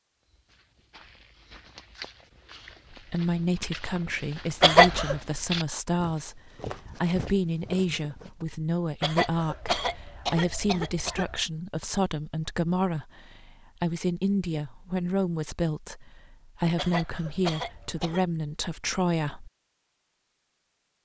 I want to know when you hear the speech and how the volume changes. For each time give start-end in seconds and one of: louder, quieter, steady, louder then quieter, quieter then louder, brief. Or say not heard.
2.9-19.5 steady.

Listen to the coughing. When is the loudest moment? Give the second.
5 s.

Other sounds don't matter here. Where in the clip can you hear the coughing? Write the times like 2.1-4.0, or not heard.
4.6-5.2, 9.0-11.4, 16.8-18.2.